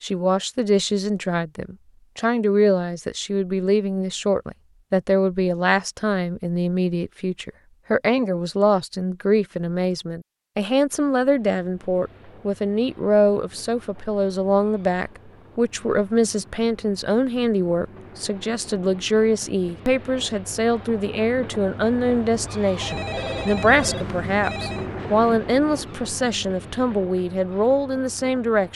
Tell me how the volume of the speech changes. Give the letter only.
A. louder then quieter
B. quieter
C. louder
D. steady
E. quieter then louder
D.